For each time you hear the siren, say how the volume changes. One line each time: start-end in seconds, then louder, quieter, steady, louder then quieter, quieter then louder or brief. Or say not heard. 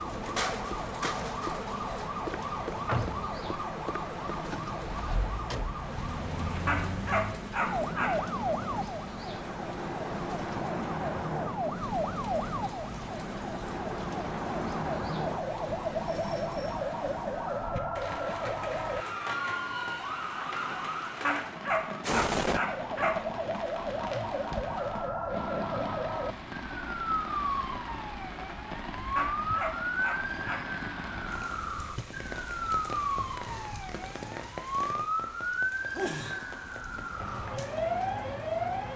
0.0-38.9 steady.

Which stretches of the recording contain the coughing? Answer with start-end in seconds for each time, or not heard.
not heard.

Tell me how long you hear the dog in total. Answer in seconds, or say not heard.
5 s.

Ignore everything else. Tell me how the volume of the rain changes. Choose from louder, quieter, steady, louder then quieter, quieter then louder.
steady.